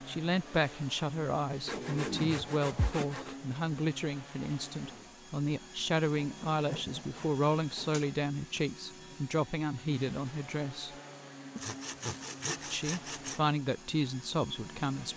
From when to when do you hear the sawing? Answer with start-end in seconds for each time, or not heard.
1.6-3.4, 6.2-8.3, 11.6-13.4.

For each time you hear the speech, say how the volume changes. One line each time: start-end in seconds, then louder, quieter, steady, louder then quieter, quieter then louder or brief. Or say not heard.
0.1-10.9 steady
12.7-15.1 brief.